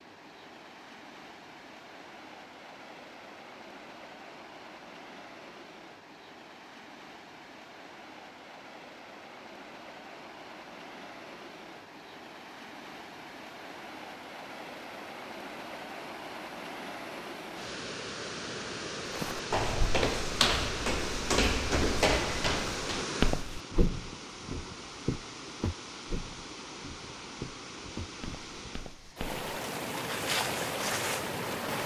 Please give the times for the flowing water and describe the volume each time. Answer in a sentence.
The flowing water can be heard from 0.0 to 31.8 s, getting louder.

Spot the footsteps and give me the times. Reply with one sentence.
You can hear the footsteps from 19.1 to 31.4 s.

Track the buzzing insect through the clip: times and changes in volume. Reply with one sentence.
The buzzing insect can't be heard in this clip.